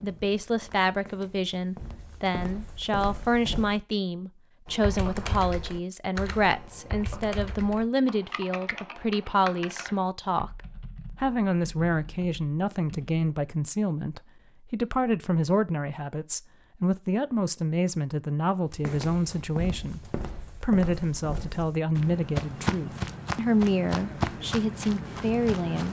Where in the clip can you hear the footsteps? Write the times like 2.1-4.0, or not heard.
0.0-3.8, 18.7-25.8.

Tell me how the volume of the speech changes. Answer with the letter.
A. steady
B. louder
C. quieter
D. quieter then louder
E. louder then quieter
A.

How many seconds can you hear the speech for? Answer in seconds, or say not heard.
26 s.